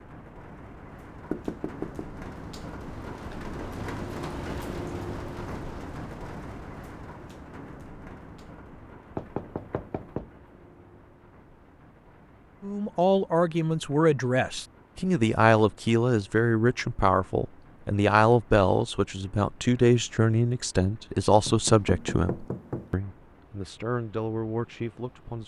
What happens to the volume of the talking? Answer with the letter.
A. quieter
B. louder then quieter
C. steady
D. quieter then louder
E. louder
A.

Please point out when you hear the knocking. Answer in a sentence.
You can hear the knocking from 1.3 to 2.0 s, from 9.2 to 10.3 s and from 21.4 to 22.9 s.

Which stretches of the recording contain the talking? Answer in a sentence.
You can hear the talking from 12.6 to 25.4 s.